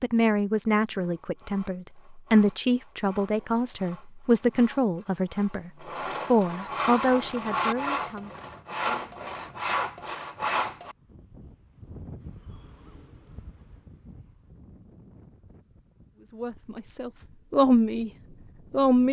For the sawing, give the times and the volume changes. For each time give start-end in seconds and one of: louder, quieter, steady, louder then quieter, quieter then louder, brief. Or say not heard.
0.8-10.9 louder.